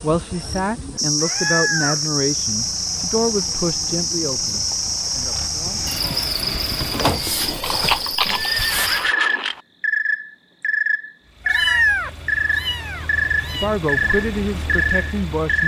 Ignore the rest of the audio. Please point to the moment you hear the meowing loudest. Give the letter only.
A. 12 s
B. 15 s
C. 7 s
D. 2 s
A.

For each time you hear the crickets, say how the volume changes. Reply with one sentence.
You can hear the crickets from 0.0 to 15.6 s, at a steady volume.